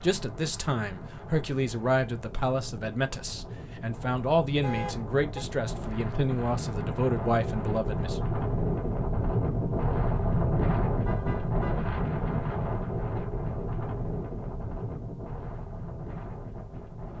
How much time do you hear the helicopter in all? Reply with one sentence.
You can't hear the helicopter here.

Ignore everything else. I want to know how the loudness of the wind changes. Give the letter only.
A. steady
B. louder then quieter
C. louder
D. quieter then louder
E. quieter
B.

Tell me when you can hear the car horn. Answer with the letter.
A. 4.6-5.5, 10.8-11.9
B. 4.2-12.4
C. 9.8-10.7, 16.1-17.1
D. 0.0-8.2
A.